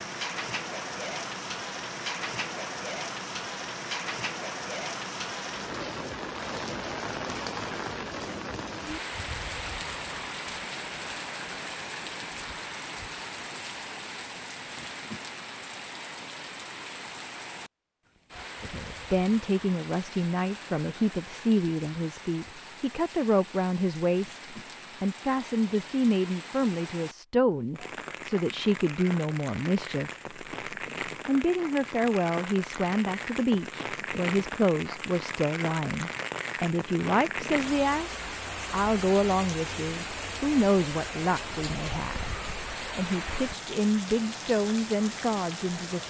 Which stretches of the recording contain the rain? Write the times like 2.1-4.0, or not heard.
0.0-46.0.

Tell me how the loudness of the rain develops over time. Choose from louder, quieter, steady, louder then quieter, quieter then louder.
quieter then louder.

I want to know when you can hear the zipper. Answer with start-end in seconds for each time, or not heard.
not heard.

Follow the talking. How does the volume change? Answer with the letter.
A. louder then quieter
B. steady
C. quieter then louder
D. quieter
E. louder
B.